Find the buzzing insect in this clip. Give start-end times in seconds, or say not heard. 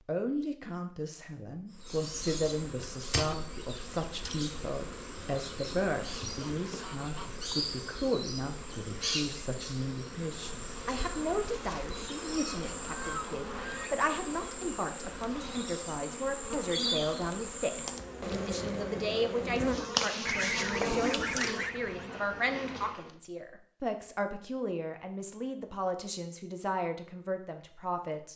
1.7-23.1.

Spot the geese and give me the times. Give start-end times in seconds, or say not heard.
6.3-7.3, 12.3-14.0, 20.2-22.1.